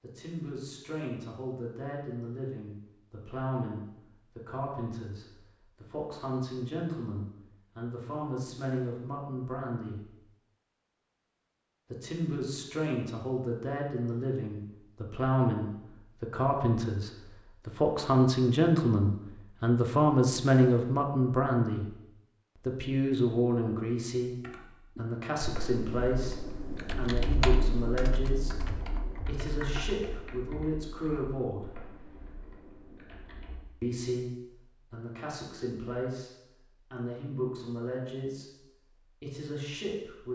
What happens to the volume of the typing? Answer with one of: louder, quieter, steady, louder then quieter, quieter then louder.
louder then quieter.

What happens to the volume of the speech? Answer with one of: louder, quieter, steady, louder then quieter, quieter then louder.
louder then quieter.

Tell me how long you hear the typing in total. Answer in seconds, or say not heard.
9 s.